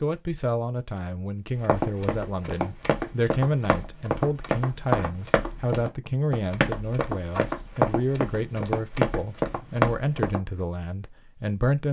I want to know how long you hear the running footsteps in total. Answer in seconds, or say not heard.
9 s.